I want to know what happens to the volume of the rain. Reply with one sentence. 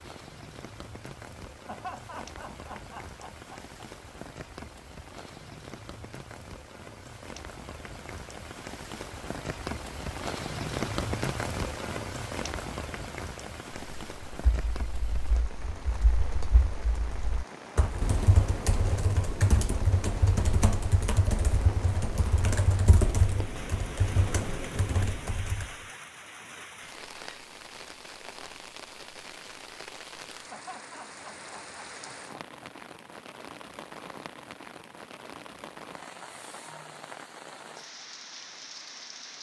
The loudness of the rain goes up, then down.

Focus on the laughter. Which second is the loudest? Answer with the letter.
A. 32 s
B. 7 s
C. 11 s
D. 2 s
D.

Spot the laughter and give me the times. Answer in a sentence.
You can hear the laughter from 1.6 to 3.6 s and from 30.5 to 32.7 s.